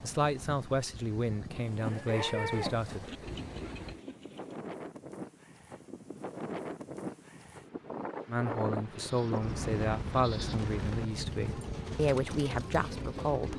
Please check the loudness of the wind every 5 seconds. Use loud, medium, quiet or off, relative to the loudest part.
medium, loud, loud.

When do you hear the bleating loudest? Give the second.
3 s.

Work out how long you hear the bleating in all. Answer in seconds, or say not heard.
3 s.